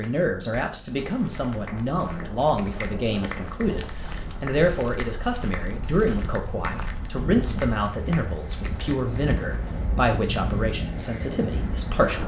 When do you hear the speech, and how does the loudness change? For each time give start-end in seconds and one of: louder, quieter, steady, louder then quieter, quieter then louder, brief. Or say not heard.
0.0-12.2 steady.